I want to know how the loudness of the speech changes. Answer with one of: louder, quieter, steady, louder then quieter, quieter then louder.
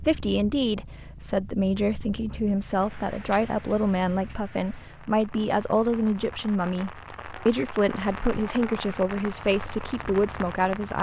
steady.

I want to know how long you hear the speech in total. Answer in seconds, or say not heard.
11 s.